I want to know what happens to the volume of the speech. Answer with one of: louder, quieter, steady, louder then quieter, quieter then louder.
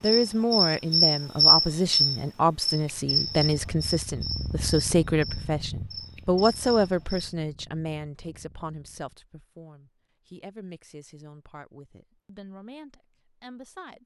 quieter.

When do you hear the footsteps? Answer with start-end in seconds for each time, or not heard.
not heard.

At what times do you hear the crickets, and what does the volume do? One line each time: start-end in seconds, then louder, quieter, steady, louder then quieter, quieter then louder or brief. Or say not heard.
0.0-7.1 quieter.